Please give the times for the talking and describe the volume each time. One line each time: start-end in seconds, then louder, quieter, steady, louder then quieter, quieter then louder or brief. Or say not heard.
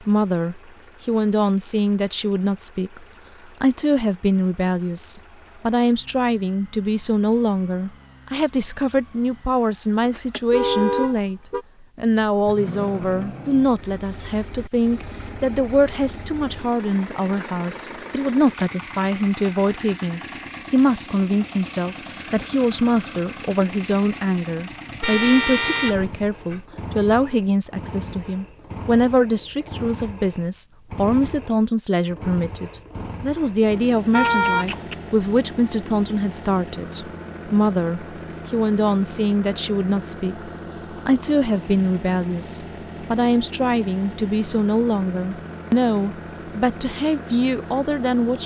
0.1-48.4 steady.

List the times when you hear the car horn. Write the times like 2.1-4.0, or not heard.
10.0-11.7, 25.0-26.6, 34.1-35.0.